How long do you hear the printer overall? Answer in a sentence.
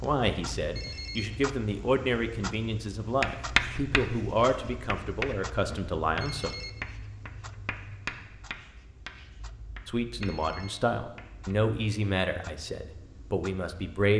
You can't hear the printer here.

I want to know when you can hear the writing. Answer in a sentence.
You can hear the writing from 3.2 to 11.6 s.